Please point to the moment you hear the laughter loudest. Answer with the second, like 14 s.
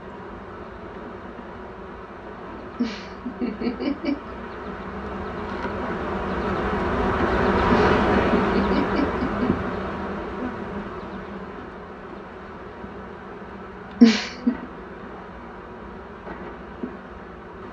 14 s.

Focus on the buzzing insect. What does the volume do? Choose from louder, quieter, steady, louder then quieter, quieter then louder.
louder then quieter.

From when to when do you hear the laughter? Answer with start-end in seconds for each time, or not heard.
2.8-4.3, 7.7-9.7, 14.0-14.7.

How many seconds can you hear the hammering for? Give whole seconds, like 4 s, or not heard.
not heard.